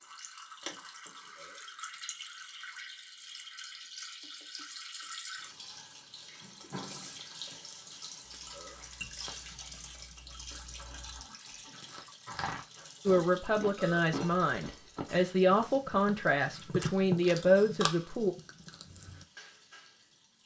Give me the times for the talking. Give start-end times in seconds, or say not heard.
13.1-18.4.